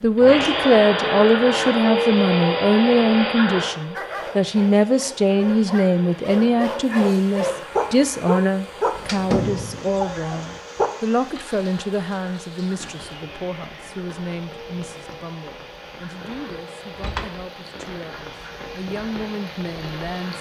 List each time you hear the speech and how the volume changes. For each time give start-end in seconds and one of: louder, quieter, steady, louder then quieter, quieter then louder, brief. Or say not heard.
0.0-20.3 quieter.